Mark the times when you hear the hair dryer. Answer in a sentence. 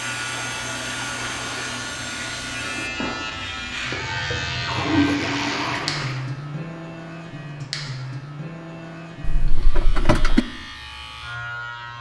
The hair dryer can be heard from 0.0 to 2.9 s.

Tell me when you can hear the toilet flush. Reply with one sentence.
You can hear the toilet flush from 0.3 to 1.9 s, from 4.3 to 6.2 s and from 9.2 to 10.4 s.